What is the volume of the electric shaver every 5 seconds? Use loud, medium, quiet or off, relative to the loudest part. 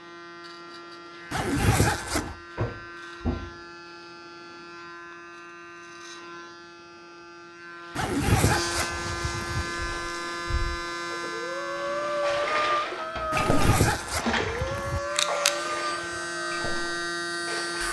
quiet, medium, medium, loud.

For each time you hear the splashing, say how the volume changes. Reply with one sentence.
You can hear the splashing from 12.2 to 17.8 s, getting quieter.